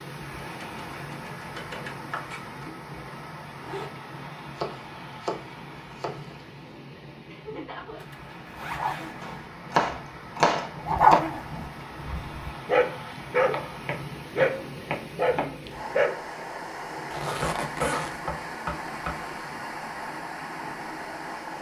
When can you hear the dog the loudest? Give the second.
11 s.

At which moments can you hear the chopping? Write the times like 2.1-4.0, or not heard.
0.4-2.6, 4.5-6.3, 9.2-11.2, 13.5-15.5, 17.4-19.4.